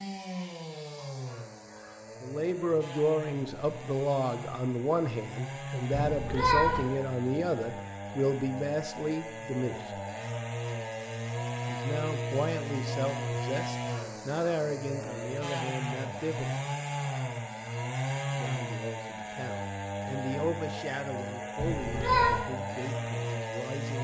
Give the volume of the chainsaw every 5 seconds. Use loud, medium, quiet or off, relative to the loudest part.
medium, medium, loud, loud, loud.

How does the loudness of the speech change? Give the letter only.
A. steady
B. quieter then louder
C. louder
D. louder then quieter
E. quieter
E.